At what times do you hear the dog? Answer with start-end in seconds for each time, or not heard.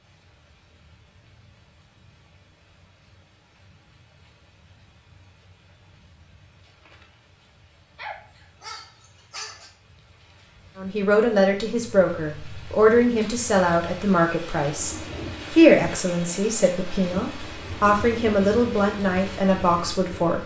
8.0-9.7.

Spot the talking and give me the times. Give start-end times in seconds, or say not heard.
10.8-20.4.